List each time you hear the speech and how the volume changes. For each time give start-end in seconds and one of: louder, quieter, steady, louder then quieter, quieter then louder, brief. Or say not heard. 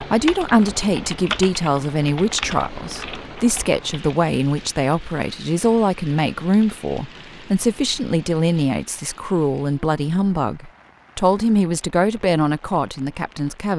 0.0-13.7 steady.